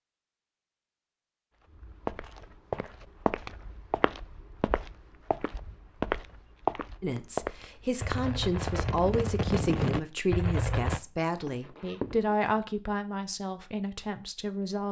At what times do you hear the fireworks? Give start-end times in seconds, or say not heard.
8.0-11.0.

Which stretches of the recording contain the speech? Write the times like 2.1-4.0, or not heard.
7.0-14.8.